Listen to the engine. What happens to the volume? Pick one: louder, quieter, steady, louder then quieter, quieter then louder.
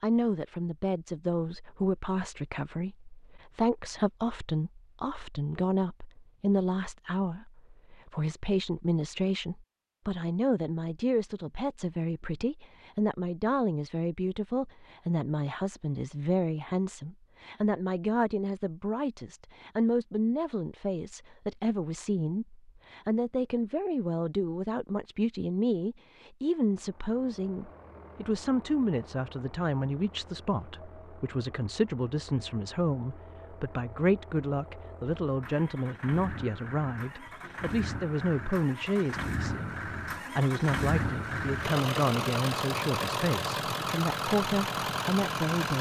louder.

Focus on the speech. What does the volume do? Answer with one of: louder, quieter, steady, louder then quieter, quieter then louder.
steady.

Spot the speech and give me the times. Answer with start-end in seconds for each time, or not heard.
0.0-45.7.